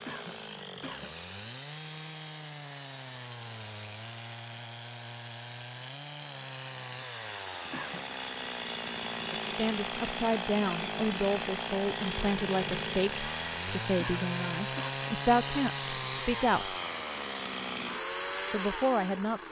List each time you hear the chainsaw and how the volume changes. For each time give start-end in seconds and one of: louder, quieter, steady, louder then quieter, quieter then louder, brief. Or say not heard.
0.0-19.4 louder.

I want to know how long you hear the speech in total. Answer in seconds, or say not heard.
8 s.